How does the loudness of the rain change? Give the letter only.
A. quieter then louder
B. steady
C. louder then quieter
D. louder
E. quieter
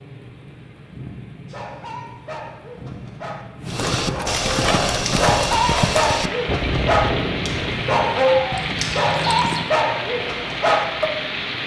D.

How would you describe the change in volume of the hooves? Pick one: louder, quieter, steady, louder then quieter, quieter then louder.
quieter.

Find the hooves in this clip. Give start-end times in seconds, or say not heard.
3.6-9.7.